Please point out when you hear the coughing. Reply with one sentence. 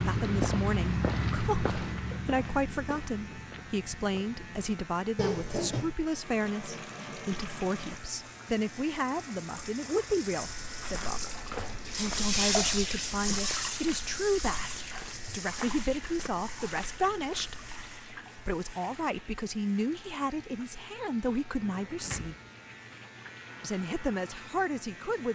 You can't hear the coughing here.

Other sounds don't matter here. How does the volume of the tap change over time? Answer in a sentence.
The volume of the tap goes up, then down.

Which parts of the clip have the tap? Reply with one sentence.
The tap can be heard from 6.1 to 25.2 s.